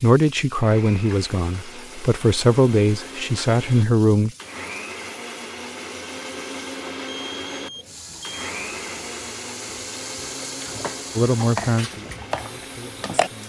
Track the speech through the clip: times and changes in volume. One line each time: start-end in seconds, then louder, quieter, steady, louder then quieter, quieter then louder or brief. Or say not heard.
0.0-4.3 quieter then louder
11.2-13.4 brief.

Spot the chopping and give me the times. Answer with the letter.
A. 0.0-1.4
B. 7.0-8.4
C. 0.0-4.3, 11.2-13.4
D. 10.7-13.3
D.